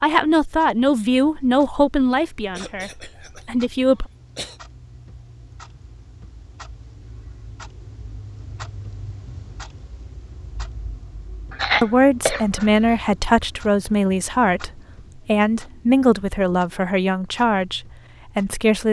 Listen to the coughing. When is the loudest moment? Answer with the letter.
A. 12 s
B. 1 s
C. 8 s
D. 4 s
A.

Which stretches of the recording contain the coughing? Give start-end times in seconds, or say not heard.
2.5-4.6, 11.5-13.1.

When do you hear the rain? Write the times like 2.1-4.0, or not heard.
not heard.